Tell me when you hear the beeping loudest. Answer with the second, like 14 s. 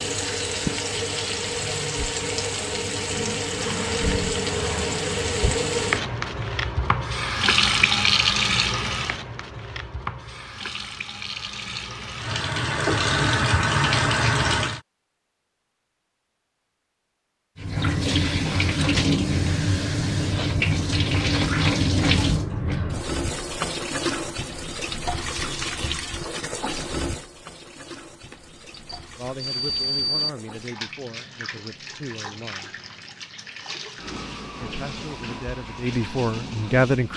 30 s.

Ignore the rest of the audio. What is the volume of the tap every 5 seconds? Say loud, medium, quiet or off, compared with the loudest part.
loud, loud, loud, loud, loud, medium, quiet, quiet.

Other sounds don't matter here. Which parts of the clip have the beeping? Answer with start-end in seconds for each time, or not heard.
28.3-30.3.